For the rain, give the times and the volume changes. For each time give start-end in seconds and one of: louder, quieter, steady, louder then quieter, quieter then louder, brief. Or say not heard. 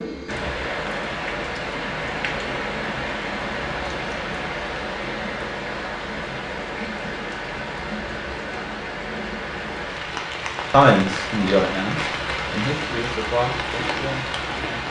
0.0-14.8 steady.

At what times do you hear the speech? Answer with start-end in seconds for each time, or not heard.
10.7-14.8.